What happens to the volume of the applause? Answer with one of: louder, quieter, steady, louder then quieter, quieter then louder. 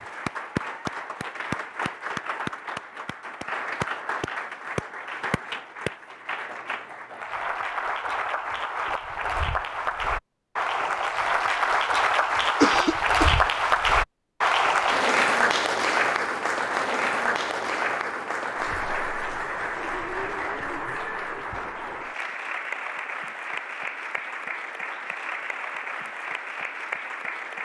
louder then quieter.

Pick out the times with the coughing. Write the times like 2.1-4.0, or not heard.
12.6-13.4.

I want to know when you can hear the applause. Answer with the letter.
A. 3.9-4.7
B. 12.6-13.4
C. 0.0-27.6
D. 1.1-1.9
C.